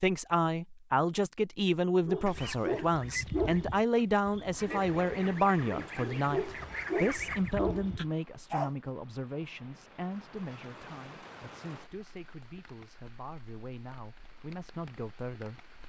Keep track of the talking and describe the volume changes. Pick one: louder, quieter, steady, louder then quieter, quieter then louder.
quieter.